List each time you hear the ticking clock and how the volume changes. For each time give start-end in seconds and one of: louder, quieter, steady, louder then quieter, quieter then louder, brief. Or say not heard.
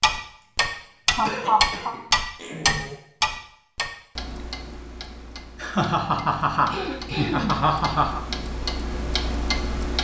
0.0-9.9 quieter then louder.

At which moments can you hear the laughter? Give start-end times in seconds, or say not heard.
1.1-1.9, 5.5-8.2.